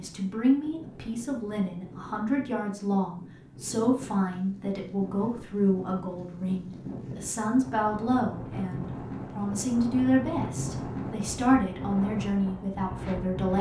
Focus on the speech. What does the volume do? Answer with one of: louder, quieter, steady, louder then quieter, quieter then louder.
steady.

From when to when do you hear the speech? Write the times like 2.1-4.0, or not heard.
0.0-13.5.